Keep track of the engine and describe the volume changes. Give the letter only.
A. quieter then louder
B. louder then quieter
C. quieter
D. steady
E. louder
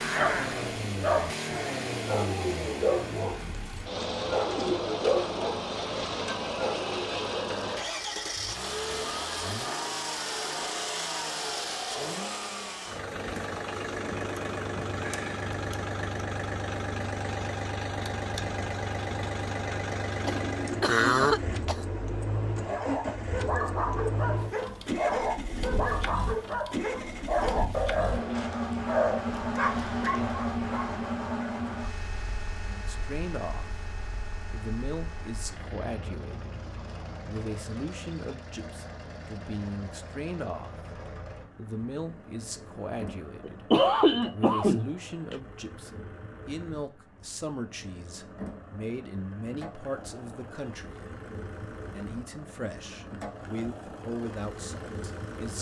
C.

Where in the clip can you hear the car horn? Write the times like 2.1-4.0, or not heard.
not heard.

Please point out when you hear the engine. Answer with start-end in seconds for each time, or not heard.
0.0-55.5.